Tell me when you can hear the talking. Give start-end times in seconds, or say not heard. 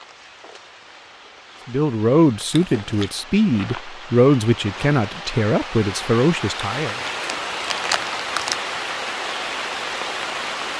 1.6-7.0.